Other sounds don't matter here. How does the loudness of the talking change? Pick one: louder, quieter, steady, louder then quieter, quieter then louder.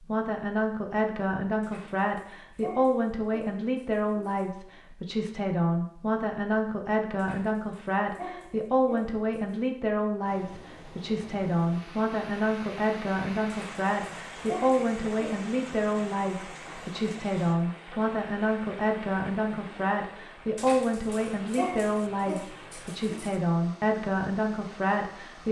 steady.